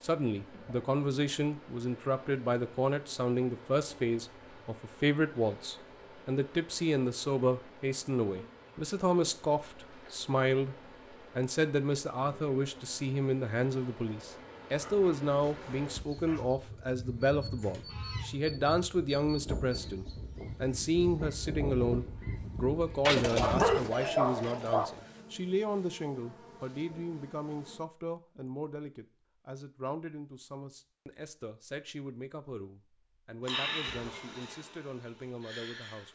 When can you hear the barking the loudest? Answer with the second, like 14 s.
24 s.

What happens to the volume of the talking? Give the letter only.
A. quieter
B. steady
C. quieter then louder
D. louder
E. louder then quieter
A.